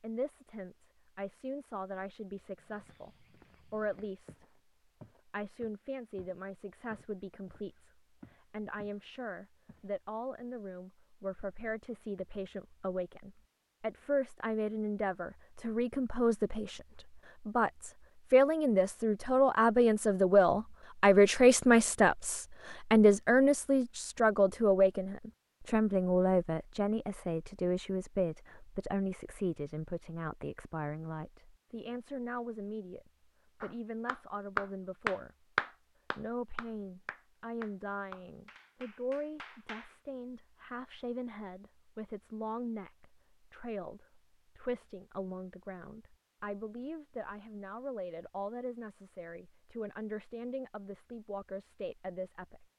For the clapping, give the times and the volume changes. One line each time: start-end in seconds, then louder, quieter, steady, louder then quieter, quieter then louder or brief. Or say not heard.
33.6-40.0 quieter.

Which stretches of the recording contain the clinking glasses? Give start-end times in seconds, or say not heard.
not heard.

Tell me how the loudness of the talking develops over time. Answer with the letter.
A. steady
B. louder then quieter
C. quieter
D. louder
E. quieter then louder
B.